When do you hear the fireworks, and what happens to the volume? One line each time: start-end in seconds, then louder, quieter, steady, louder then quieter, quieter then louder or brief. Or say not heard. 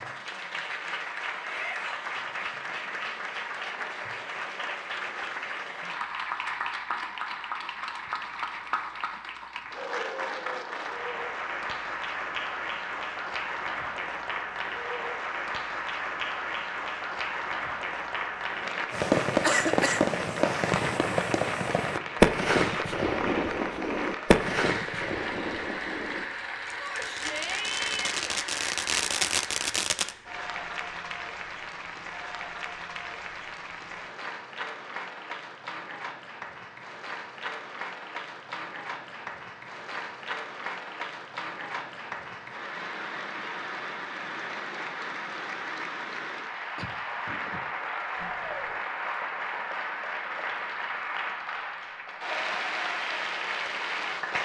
18.9-30.1 quieter then louder.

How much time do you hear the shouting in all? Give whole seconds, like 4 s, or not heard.
3 s.